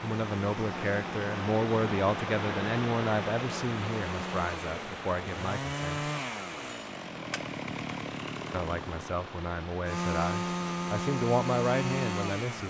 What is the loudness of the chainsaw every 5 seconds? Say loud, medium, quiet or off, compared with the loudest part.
medium, medium, loud.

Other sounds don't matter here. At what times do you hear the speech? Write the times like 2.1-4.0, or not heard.
0.0-6.1, 8.5-12.6.